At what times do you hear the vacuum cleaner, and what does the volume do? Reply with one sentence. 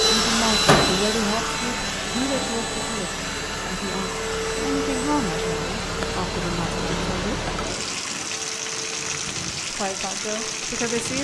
The vacuum cleaner can be heard from 0.0 to 11.1 s, getting quieter.